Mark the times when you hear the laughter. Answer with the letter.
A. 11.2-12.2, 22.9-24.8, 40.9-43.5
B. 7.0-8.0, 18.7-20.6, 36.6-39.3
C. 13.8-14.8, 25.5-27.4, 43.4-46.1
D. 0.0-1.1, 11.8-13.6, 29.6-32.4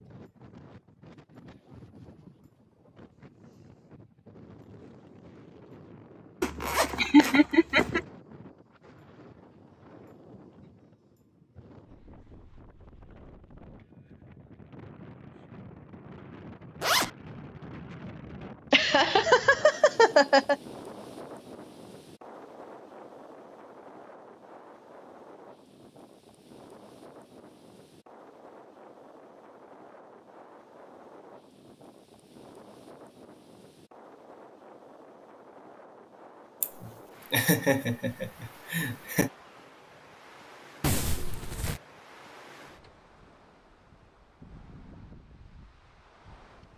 B.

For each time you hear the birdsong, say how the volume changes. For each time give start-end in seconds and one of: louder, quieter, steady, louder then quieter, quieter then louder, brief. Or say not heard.
not heard.